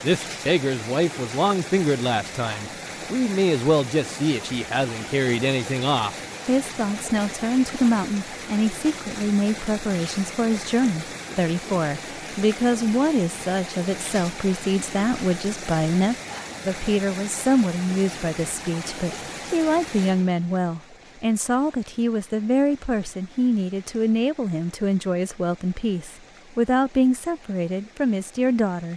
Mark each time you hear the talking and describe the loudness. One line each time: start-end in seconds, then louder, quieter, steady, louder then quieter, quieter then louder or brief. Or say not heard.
0.0-28.9 steady.